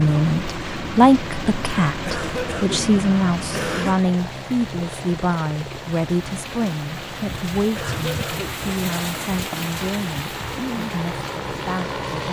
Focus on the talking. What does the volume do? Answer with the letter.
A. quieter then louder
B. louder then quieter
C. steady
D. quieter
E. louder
D.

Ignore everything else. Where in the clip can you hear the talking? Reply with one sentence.
You can hear the talking from 0.0 to 12.2 s.